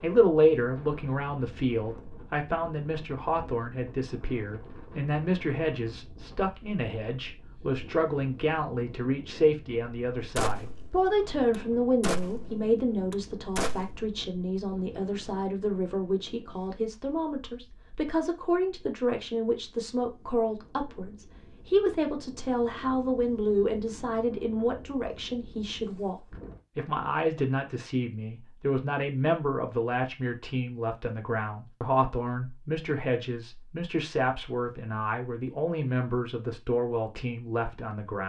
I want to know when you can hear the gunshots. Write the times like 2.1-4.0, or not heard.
10.3-14.0.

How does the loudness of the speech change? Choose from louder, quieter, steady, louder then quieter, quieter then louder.
steady.